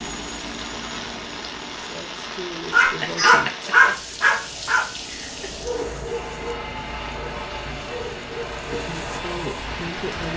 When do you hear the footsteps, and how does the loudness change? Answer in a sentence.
The footsteps can't be heard in this clip.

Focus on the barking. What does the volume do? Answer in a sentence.
The loudness of the barking goes down.